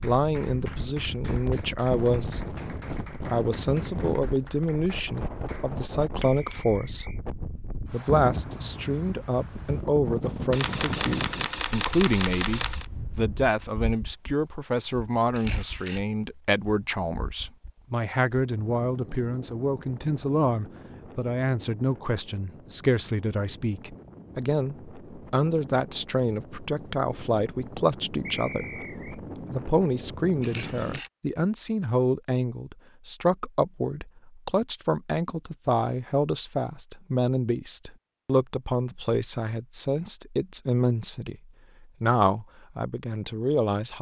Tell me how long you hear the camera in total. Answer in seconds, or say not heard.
4 s.